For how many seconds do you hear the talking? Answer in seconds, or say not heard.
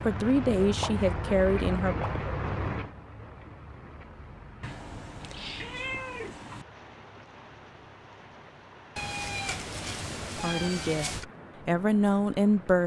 4 s.